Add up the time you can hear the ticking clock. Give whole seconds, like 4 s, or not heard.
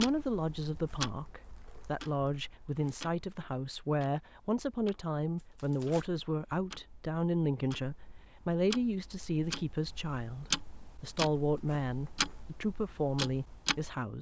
14 s.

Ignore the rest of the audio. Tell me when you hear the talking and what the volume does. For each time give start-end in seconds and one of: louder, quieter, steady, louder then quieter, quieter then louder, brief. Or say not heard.
0.0-14.1 steady.